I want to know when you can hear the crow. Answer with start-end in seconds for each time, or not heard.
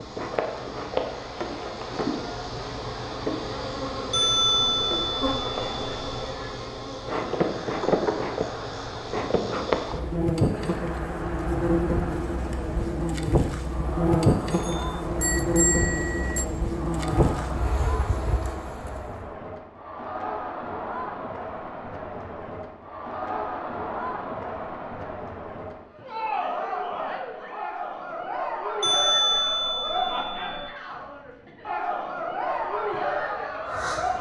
32.4-34.1.